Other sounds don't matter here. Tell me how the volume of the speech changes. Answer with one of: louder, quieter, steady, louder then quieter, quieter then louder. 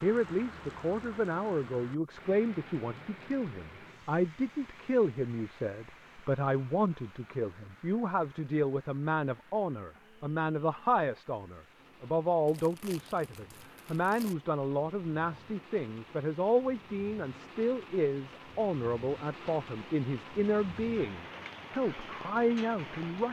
steady.